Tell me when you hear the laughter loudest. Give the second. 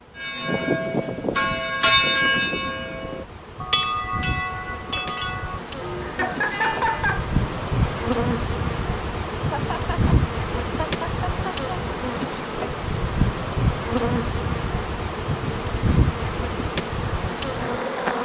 7 s.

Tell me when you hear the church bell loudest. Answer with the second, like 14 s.
2 s.